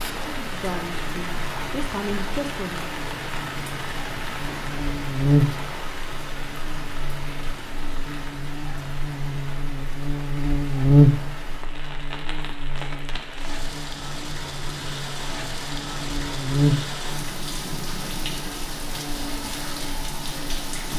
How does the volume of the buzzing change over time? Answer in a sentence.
The loudness of the buzzing goes up, then down.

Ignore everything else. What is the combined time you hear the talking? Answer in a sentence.
You can hear the talking for 3 seconds altogether.